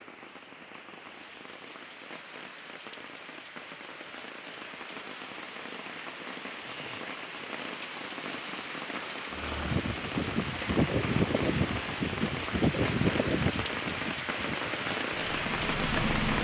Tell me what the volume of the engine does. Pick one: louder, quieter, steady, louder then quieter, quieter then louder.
quieter.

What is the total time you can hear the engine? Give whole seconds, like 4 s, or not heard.
7 s.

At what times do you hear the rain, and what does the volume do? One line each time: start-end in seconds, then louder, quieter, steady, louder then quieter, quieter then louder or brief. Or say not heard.
0.0-16.3 louder.